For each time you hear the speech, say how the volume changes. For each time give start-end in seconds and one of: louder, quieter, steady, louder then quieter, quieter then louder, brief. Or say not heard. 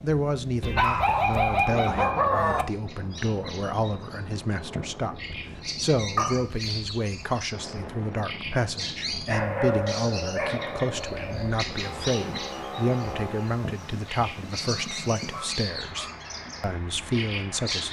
0.0-17.8 steady.